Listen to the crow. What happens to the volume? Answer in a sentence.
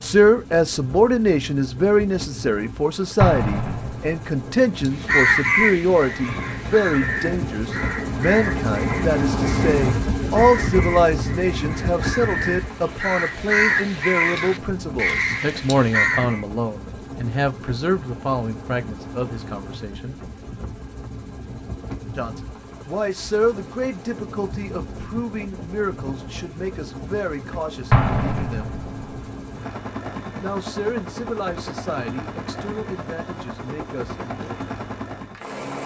The volume of the crow goes down, then up.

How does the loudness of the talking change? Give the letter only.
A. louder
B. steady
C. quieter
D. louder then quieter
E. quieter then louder
C.